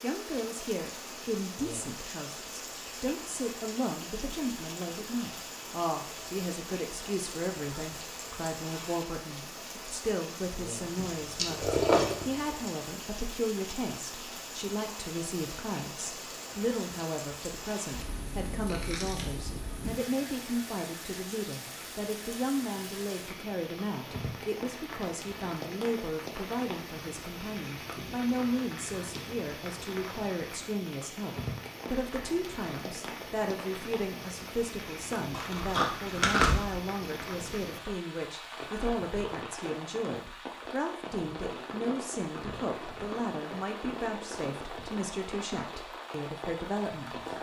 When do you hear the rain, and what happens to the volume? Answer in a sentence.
You can hear the rain from 0.0 to 47.3 s, at a steady volume.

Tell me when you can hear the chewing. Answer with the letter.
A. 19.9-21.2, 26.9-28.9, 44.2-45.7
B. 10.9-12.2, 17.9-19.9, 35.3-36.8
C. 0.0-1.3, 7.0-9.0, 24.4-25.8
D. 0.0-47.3
B.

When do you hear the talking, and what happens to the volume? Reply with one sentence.
The talking can be heard from 0.0 to 47.3 s, at a steady volume.